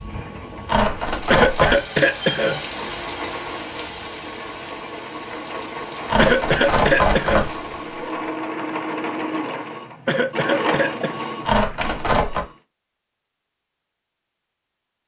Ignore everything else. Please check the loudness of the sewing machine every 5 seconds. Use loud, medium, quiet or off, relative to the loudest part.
medium, loud, loud.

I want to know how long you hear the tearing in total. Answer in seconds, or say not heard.
4 s.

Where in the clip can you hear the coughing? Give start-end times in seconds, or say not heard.
1.3-2.6, 6.2-7.5, 10.1-11.2.